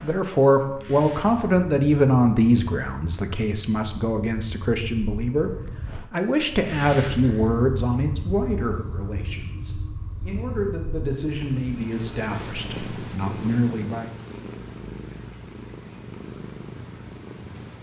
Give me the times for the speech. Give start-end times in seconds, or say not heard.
0.0-14.1.